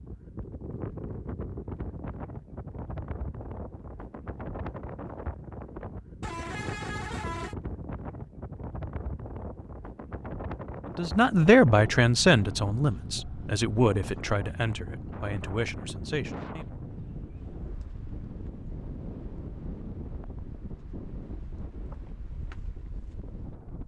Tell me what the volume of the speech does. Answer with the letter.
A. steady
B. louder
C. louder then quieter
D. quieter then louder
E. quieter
E.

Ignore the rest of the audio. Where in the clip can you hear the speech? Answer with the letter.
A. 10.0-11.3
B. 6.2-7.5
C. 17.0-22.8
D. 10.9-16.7
D.